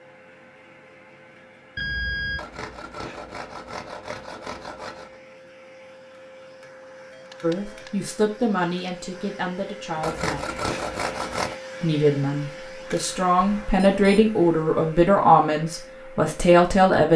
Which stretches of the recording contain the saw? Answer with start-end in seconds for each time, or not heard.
2.4-5.2, 10.0-11.6.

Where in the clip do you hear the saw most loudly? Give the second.
11 s.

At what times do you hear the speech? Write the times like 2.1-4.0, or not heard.
7.4-10.6, 11.8-17.1.